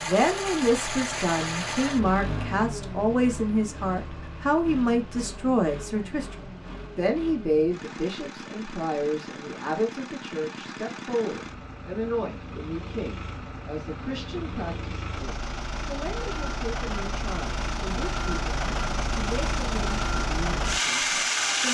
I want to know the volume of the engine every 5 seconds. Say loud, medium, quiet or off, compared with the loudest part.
medium, quiet, quiet, medium, loud.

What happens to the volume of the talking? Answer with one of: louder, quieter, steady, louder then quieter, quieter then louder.
quieter.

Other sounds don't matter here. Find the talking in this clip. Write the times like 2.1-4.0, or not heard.
0.0-21.6.